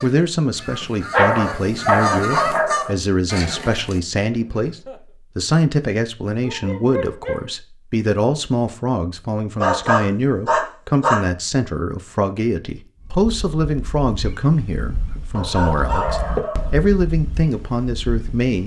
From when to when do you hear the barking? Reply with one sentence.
You can hear the barking from 1.1 to 3.0 s, from 6.4 to 7.5 s, from 9.6 to 11.2 s and from 15.3 to 16.8 s.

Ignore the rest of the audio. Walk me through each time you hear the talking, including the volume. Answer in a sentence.
The talking can be heard from 0.0 to 18.6 s, at a steady volume.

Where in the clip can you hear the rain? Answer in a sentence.
You can't hear the rain here.